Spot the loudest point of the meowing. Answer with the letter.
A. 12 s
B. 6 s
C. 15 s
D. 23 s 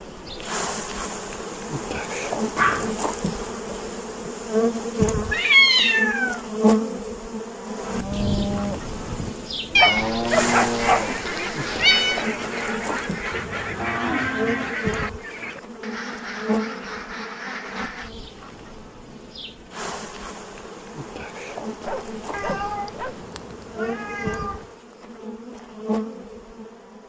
B.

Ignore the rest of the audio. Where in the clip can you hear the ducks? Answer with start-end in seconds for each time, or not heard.
10.3-18.1.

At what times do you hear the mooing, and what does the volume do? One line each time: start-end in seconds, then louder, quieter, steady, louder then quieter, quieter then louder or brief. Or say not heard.
7.9-14.8 quieter then louder.